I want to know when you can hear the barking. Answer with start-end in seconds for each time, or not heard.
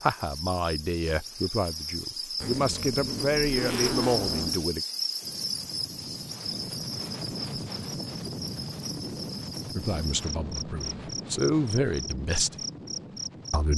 not heard.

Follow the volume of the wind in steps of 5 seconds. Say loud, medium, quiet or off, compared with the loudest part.
off, loud, loud.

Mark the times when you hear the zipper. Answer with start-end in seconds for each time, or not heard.
2.4-4.7.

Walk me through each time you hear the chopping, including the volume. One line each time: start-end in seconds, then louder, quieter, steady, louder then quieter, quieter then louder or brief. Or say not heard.
not heard.